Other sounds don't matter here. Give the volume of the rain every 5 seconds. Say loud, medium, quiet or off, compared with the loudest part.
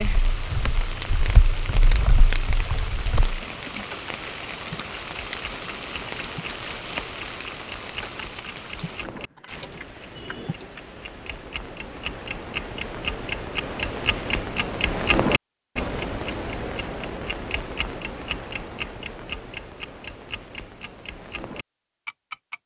loud, loud, quiet, off, off.